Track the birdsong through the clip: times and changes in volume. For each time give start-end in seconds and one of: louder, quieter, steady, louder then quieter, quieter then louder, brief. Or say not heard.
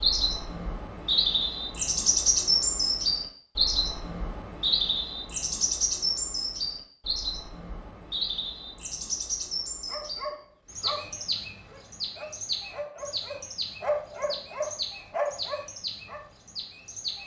0.0-17.2 quieter.